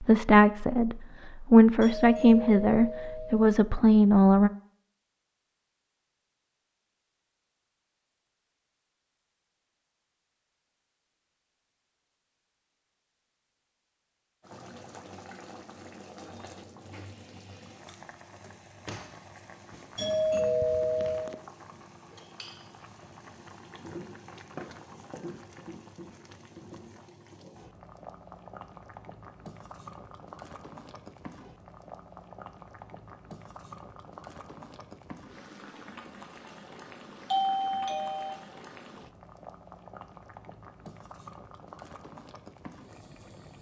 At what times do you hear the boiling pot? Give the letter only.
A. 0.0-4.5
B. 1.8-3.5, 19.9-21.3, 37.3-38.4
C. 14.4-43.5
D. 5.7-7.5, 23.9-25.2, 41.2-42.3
C.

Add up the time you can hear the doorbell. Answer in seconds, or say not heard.
4 s.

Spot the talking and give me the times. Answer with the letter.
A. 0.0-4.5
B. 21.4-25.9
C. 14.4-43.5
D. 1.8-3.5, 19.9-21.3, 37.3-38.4
A.